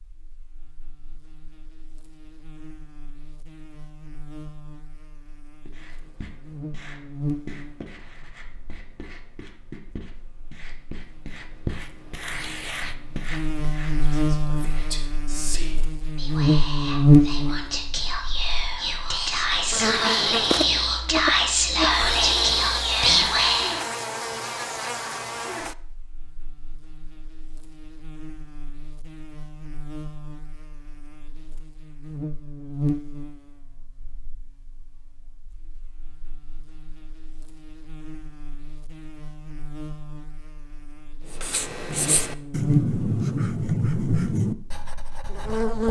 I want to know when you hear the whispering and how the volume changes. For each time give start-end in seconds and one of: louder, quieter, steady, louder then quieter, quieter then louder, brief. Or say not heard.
14.0-23.9 louder.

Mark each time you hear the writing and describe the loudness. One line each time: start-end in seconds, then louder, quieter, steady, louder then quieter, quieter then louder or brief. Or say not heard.
5.7-15.1 louder then quieter
41.3-45.8 louder then quieter.